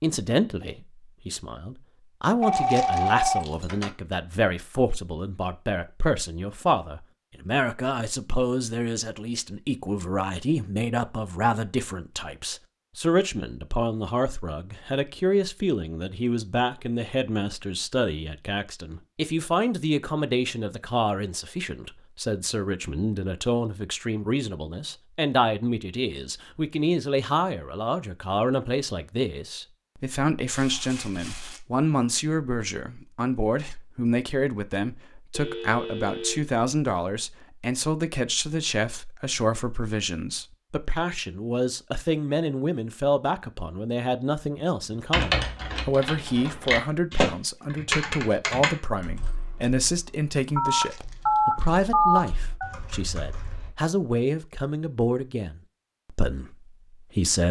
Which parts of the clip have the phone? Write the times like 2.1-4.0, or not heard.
2.4-3.9, 35.3-36.5, 50.5-52.8.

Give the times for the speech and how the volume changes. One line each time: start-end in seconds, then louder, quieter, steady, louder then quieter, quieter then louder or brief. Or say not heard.
0.0-57.4 steady.